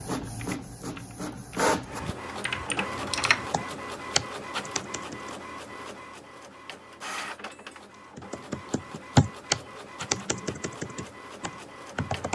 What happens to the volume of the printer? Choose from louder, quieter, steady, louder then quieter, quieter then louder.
quieter.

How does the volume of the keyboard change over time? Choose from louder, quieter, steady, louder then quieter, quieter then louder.
louder then quieter.